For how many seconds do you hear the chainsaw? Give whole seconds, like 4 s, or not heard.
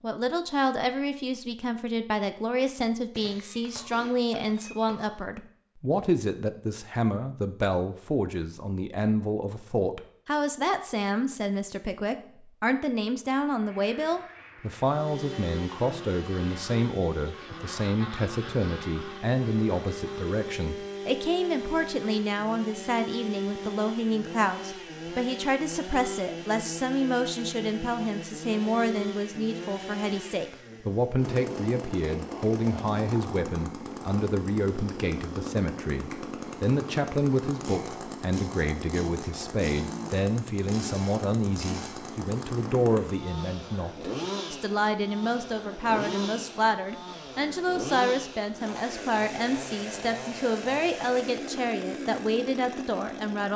39 s.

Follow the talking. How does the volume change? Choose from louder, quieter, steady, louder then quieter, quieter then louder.
steady.